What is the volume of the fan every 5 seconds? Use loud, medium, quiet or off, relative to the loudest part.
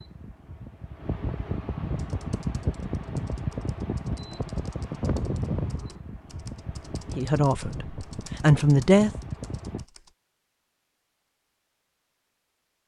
loud, loud, off.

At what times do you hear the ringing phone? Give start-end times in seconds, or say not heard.
not heard.